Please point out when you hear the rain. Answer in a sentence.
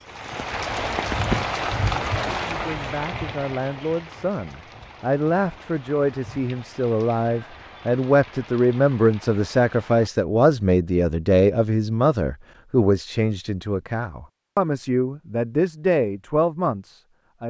You can hear the rain from 0.0 to 10.1 s.